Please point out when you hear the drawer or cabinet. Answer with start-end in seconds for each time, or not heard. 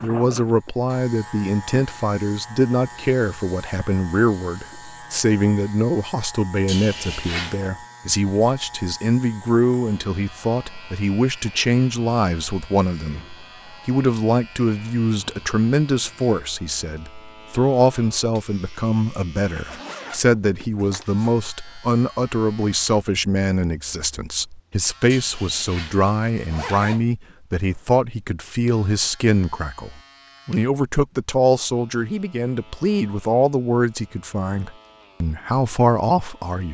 not heard.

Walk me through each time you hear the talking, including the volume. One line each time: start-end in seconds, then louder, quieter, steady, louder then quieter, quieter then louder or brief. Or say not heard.
0.0-36.7 steady.